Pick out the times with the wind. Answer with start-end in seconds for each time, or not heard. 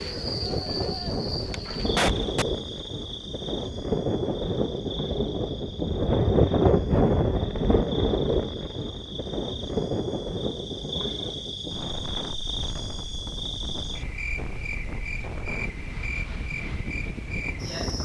0.0-18.0.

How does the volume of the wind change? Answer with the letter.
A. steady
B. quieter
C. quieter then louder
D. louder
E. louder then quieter
E.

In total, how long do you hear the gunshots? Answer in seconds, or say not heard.
2 s.